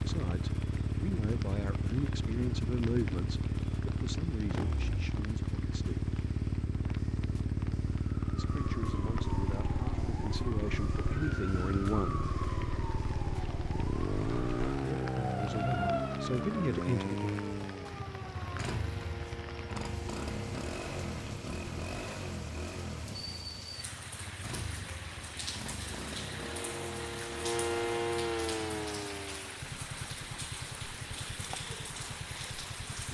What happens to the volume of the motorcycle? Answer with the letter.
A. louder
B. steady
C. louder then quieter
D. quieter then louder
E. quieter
E.